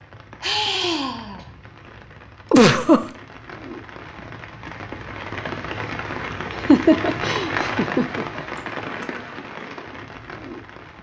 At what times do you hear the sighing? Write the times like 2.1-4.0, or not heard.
0.4-1.4, 8.6-9.1.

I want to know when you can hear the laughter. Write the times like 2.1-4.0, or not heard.
2.5-3.0, 6.5-8.4.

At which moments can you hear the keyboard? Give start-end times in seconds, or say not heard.
not heard.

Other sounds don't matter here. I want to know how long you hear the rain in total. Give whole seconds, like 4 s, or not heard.
11 s.